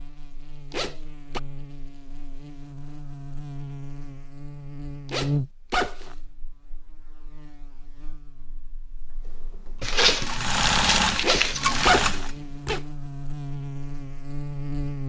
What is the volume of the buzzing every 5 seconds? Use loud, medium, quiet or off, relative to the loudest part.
medium, loud, loud.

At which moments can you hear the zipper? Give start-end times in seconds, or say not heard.
0.7-1.4, 5.0-6.2, 11.2-12.8.